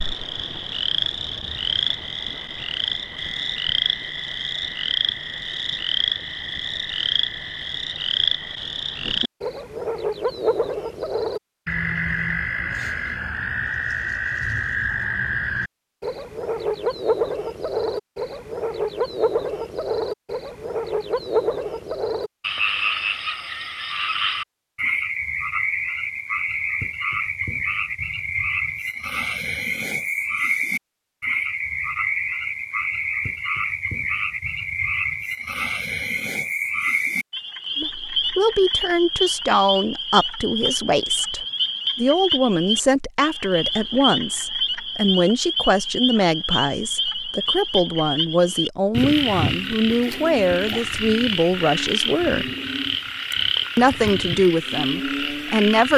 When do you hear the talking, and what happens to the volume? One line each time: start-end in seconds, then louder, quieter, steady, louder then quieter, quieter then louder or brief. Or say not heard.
37.8-52.5 steady
53.8-55.9 brief.